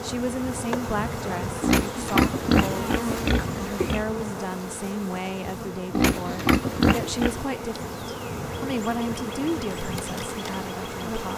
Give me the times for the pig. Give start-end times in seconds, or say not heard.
1.6-4.0, 5.9-7.5.